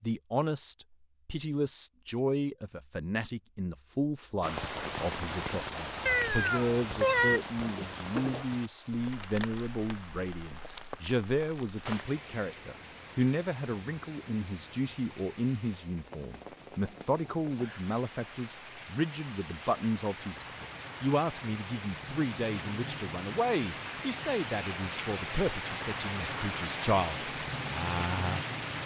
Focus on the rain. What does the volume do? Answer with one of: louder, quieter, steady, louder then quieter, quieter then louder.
quieter then louder.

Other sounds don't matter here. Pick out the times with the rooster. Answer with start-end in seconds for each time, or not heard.
not heard.